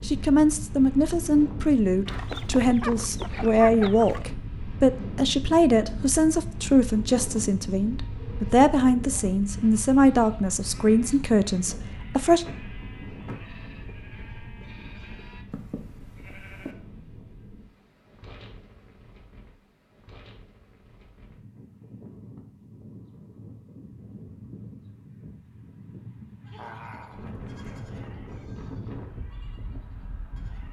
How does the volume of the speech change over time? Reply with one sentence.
The loudness of the speech stays about the same.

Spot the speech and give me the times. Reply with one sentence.
You can hear the speech from 0.0 to 12.4 s.